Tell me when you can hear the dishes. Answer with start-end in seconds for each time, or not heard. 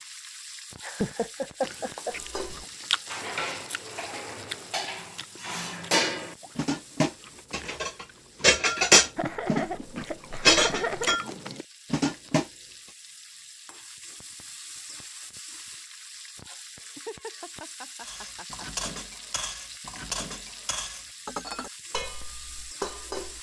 2.0-12.5, 18.0-23.3.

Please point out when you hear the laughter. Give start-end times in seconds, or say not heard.
0.8-2.1, 9.2-11.2, 16.8-18.9.